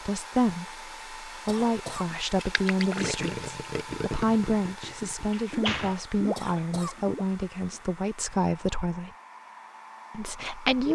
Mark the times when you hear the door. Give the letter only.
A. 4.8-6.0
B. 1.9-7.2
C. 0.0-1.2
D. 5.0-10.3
A.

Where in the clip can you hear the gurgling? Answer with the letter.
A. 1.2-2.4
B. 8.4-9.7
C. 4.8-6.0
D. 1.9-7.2
D.